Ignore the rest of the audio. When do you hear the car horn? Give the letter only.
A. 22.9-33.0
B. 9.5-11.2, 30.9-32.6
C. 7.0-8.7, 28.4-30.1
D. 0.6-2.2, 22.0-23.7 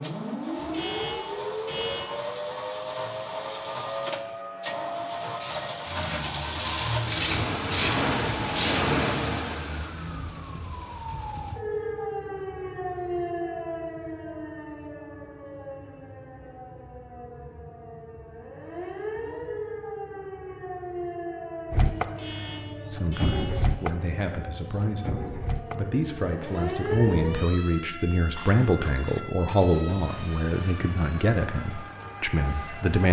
D.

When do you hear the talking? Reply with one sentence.
You can hear the talking from 22.9 to 33.0 s.